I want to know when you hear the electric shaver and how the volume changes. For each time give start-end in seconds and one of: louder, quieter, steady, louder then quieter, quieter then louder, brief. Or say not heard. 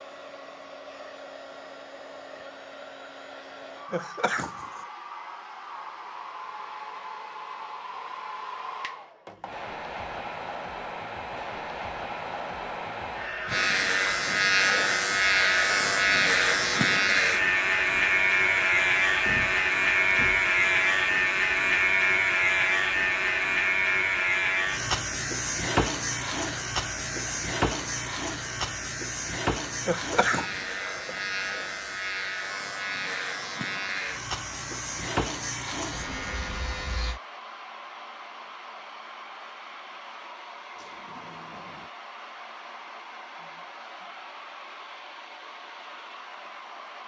13.4-37.2 quieter.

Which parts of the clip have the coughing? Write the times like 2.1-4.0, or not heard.
3.9-4.8, 29.9-31.2.